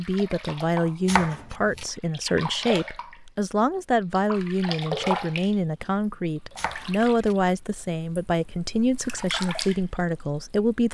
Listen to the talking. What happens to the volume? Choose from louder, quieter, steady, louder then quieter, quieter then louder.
steady.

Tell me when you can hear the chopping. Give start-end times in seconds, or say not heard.
1.1-1.9, 6.5-7.3.